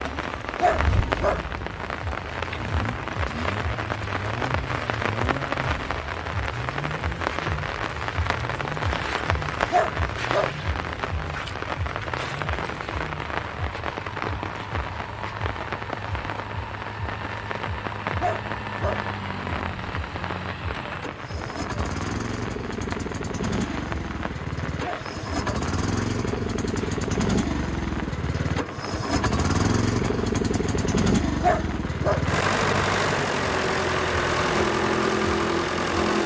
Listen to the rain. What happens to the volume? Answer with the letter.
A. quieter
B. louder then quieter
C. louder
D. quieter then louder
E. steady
A.